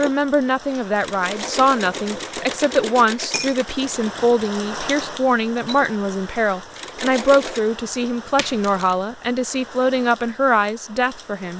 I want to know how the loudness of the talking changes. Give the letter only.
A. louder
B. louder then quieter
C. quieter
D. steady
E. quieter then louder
D.